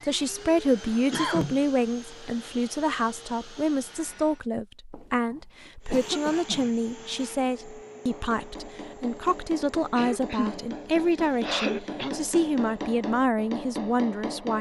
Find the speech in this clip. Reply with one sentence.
You can hear the speech from 0.0 to 14.5 s.